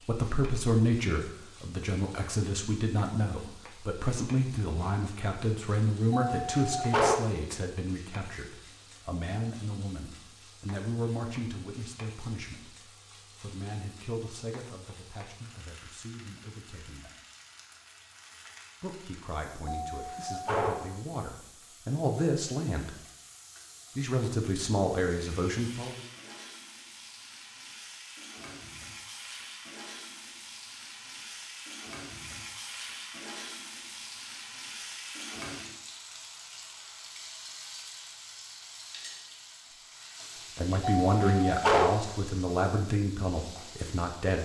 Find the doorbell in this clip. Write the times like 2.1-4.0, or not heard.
6.1-7.2, 19.8-20.9, 41.0-42.0.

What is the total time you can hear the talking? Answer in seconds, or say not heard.
27 s.